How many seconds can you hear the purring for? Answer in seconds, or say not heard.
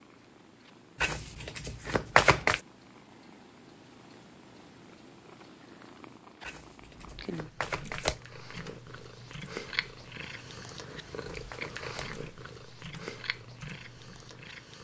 15 s.